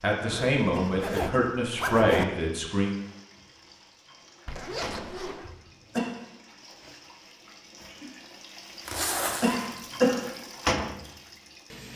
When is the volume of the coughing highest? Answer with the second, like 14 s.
10 s.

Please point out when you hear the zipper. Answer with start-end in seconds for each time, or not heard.
0.2-2.2, 4.5-5.5, 8.8-9.6.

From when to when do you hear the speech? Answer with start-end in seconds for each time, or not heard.
0.0-2.9.